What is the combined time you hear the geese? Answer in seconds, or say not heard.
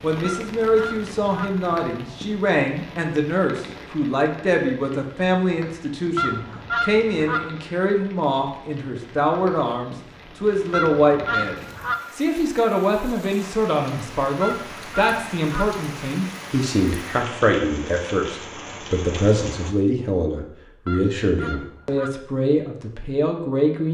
6 s.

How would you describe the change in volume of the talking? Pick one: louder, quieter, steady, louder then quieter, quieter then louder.
steady.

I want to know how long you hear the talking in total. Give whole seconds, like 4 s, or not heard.
24 s.